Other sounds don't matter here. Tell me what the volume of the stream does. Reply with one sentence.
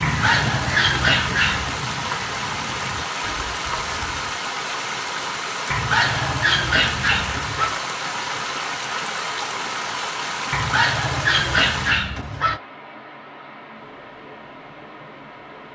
The loudness of the stream goes down.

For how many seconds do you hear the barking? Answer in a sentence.
The barking can be heard for 6 seconds in total.